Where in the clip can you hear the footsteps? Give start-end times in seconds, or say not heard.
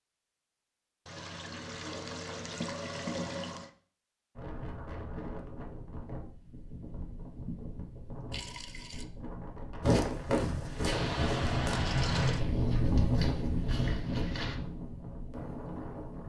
9.8-14.6.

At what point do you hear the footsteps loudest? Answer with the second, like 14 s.
10 s.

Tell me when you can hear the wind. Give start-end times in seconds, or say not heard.
4.3-16.2.